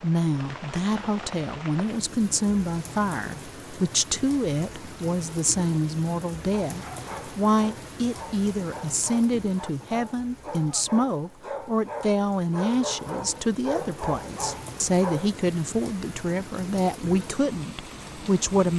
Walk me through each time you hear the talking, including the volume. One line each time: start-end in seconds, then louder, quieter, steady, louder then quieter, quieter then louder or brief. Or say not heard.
0.0-18.7 steady.